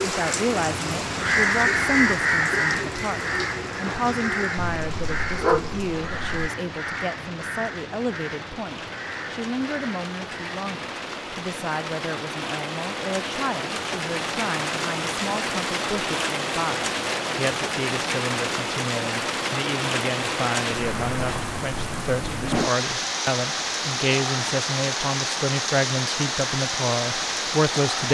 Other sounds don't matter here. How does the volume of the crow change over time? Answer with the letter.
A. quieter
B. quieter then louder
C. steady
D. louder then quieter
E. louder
A.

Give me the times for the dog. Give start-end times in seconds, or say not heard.
4.5-6.5.